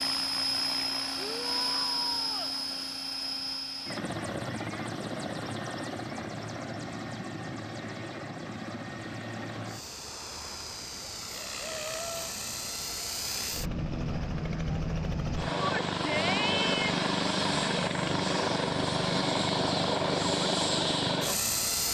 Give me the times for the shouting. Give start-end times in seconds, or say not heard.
1.1-2.5, 11.7-12.3, 15.6-17.1.